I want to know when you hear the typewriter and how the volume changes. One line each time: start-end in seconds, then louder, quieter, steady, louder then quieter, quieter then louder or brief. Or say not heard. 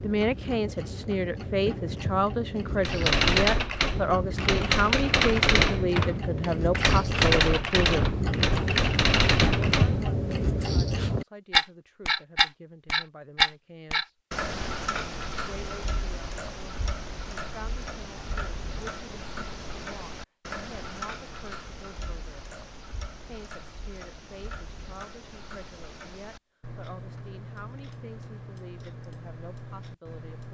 2.8-10.3 steady.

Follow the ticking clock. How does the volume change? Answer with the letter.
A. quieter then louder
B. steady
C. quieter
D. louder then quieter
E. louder
D.